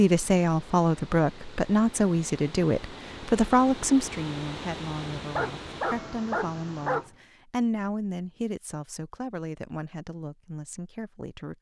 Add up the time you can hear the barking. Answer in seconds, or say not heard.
2 s.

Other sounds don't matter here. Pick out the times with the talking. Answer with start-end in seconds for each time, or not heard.
0.0-11.5.